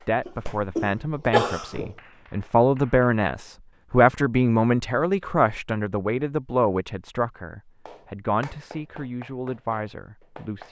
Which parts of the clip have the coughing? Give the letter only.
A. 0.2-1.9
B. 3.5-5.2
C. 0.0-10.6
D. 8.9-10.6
A.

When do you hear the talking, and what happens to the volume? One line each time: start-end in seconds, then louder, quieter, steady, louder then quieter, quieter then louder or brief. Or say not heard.
0.0-10.6 louder then quieter.